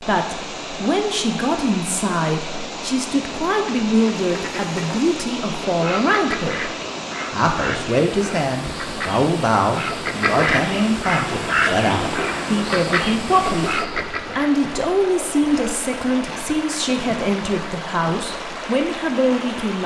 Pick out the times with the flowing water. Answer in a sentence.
The flowing water can be heard from 0.0 to 19.8 s.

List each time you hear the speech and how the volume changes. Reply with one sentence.
The speech can be heard from 0.0 to 6.7 s, at a steady volume; and from 7.3 to 19.8 s, at a steady volume.